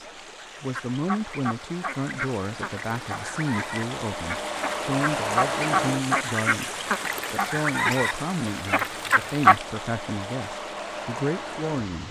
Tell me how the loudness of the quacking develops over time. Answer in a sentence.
The loudness of the quacking goes up.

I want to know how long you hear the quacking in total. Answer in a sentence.
You can hear the quacking for 9 seconds altogether.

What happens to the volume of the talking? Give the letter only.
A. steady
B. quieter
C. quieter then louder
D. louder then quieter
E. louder
A.